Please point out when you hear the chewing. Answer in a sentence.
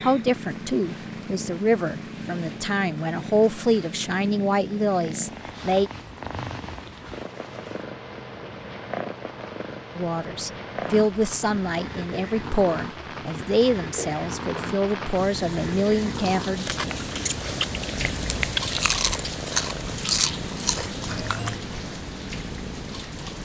You can hear the chewing from 16.4 to 21.6 s.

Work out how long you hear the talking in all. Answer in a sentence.
The talking can be heard for 13 seconds in total.